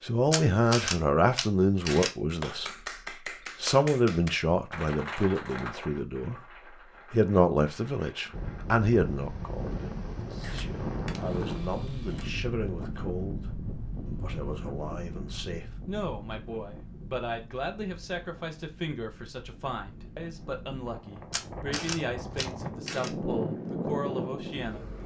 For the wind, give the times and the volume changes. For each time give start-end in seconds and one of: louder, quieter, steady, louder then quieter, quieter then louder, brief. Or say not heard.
8.3-25.0 quieter then louder.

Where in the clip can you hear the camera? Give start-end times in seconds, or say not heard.
0.3-2.1, 10.4-12.3, 21.3-23.1.